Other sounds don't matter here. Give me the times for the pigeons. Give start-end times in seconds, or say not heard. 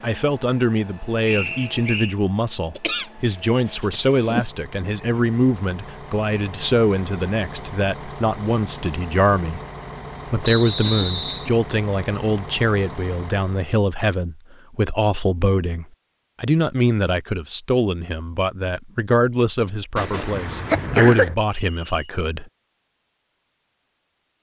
not heard.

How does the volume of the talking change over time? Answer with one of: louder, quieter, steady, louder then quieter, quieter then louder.
steady.